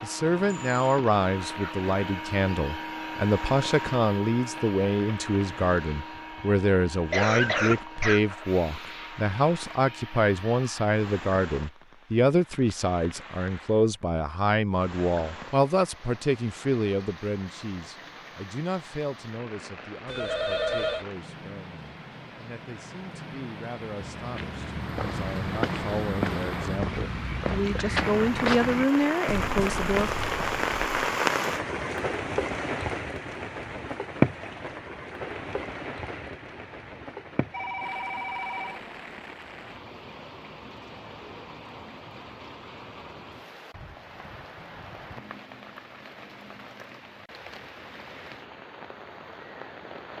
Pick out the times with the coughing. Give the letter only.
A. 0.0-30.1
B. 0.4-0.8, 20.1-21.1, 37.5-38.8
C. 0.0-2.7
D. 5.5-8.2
D.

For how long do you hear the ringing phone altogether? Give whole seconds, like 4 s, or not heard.
3 s.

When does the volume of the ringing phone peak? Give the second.
21 s.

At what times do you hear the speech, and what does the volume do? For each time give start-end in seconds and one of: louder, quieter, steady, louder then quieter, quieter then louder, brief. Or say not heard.
0.0-30.1 quieter then louder.